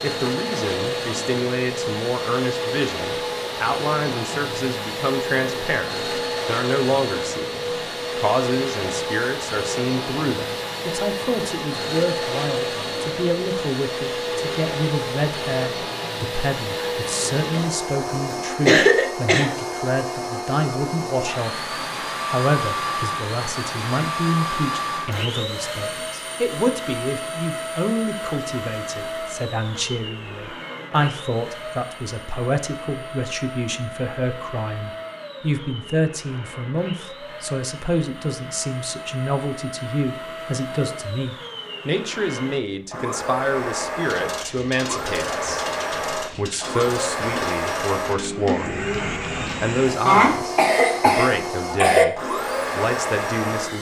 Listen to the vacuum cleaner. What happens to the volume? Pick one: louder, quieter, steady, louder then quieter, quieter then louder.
quieter then louder.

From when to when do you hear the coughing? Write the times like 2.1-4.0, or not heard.
17.5-19.5, 50.0-52.0.